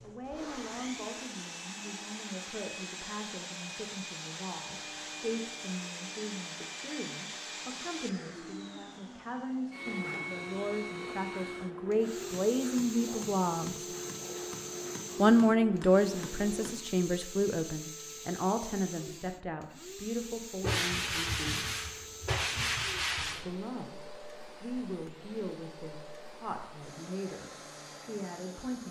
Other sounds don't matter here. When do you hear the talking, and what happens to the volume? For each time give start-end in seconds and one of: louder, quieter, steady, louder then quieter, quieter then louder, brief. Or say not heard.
0.0-13.8 louder
15.2-21.8 quieter
23.4-24.0 brief
24.6-28.8 quieter then louder.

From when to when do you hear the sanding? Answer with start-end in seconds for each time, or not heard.
20.6-23.5.